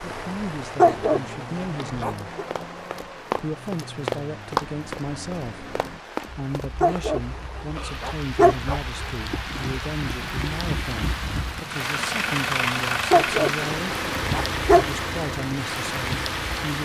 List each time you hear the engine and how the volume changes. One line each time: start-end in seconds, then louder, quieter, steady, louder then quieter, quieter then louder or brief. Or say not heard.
0.0-16.8 louder.